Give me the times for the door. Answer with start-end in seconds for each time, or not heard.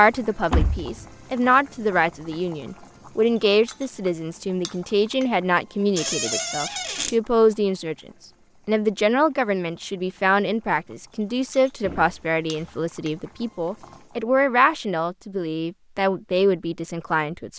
0.5-0.9, 6.0-7.2, 11.8-12.8.